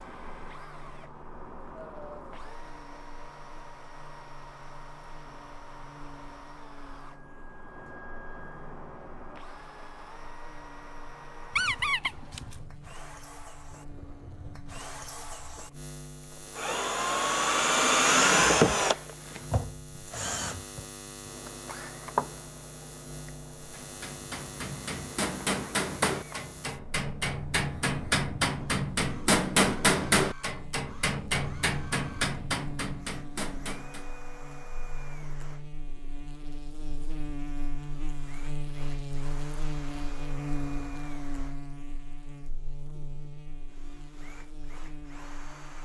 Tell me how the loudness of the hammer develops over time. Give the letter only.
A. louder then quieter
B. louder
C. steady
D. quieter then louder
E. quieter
A.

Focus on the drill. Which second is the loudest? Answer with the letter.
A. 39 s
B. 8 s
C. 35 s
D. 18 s
D.